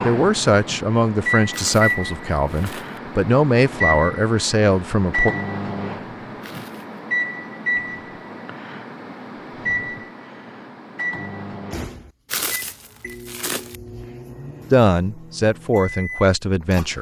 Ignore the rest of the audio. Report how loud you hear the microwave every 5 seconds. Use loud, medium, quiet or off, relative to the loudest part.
loud, loud, medium, medium.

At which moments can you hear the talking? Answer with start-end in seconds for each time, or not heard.
0.0-5.3, 14.7-16.9.